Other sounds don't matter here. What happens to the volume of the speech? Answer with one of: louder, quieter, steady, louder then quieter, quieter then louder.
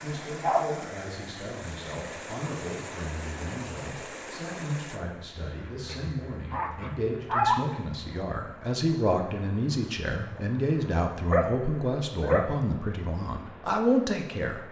louder.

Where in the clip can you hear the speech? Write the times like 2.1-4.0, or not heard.
0.0-14.6.